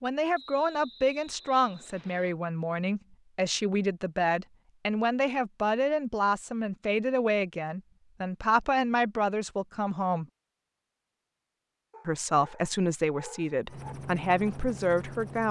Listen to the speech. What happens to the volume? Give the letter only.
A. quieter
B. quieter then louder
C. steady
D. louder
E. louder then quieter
C.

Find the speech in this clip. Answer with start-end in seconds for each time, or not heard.
0.0-10.2, 12.1-15.4.